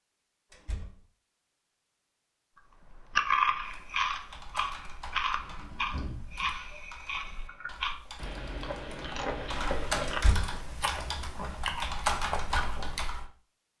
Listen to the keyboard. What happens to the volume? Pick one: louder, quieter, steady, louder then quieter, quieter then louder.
quieter then louder.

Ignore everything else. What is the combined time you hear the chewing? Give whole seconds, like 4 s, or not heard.
10 s.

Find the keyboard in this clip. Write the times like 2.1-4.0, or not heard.
3.6-13.3.